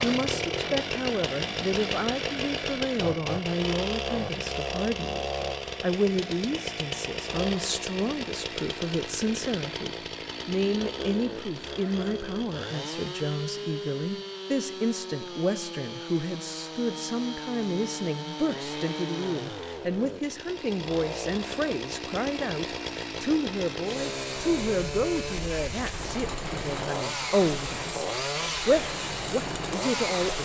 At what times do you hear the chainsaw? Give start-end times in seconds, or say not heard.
0.0-30.4.